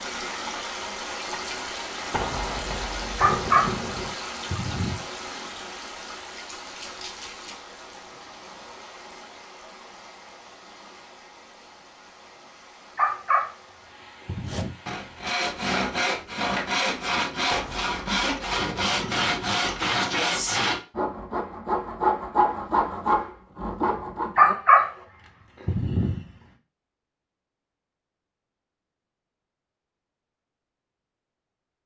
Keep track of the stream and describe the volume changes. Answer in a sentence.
The volume of the stream goes down.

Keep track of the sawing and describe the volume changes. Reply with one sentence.
The volume of the sawing stays about the same.